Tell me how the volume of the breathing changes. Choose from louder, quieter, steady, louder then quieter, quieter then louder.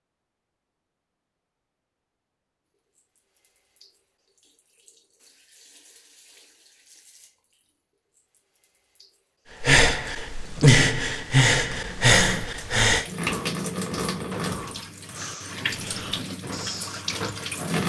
quieter.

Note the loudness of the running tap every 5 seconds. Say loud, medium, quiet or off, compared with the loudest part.
quiet, quiet, loud, loud.